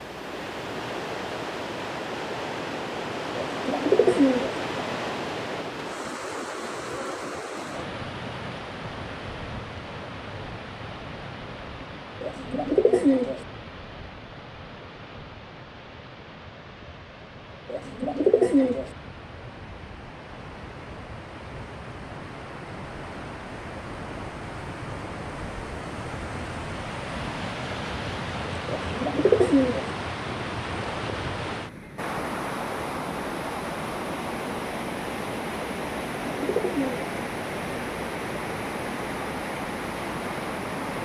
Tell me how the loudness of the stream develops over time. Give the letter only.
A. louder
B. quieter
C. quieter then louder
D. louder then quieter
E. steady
C.